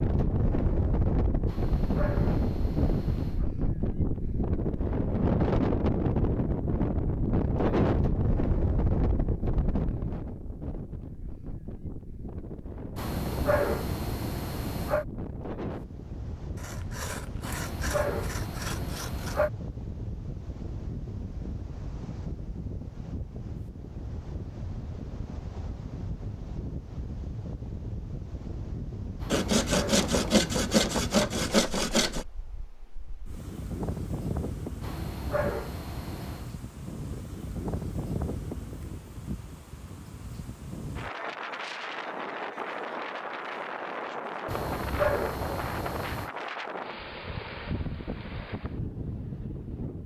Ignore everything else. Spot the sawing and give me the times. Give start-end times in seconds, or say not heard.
16.6-19.4, 29.3-32.2.